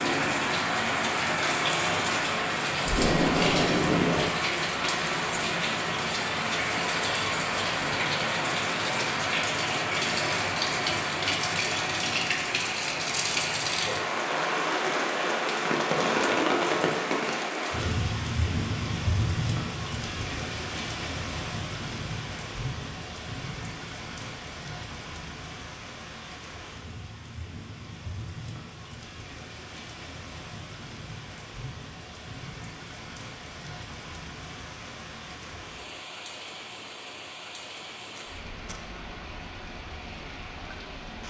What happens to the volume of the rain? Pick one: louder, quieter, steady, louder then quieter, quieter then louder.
quieter.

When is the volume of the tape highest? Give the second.
4 s.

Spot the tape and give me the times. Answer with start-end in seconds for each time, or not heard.
2.9-4.3, 38.0-38.8.